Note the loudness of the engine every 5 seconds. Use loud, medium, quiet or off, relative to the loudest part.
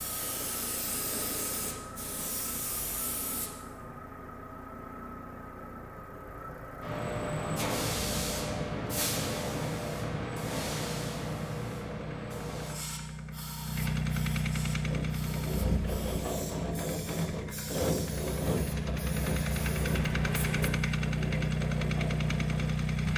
quiet, quiet, medium, medium, loud.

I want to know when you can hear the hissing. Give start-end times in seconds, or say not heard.
0.0-3.5, 6.8-20.7.